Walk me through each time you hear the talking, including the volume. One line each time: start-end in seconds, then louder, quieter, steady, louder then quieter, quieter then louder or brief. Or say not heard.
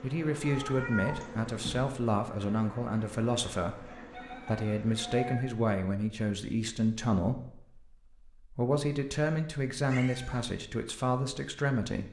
0.0-12.0 steady.